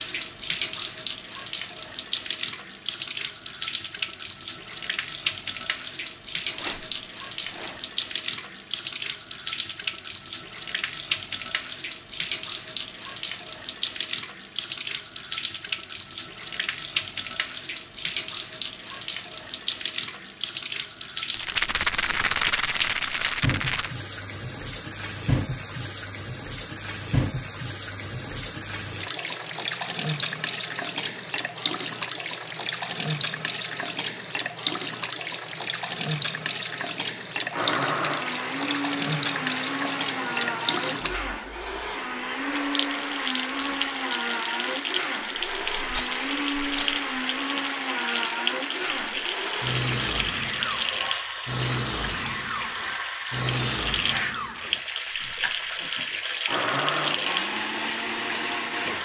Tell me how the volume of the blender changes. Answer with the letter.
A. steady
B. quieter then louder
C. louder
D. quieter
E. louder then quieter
A.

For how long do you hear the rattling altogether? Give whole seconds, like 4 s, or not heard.
5 s.